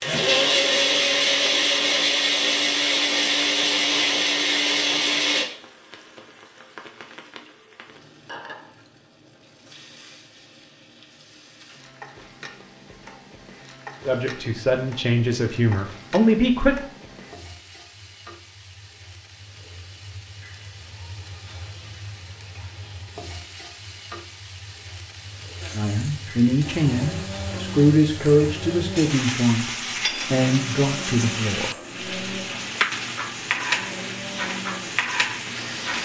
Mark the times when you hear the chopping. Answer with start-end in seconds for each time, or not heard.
not heard.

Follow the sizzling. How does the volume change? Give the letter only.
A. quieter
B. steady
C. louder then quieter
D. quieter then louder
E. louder
E.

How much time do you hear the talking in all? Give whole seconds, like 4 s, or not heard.
8 s.